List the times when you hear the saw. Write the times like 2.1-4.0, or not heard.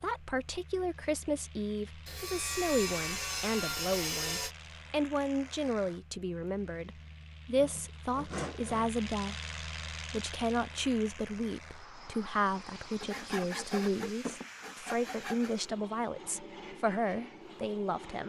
2.0-4.5, 7.5-8.9, 13.0-15.5.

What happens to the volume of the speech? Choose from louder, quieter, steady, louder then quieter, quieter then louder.
steady.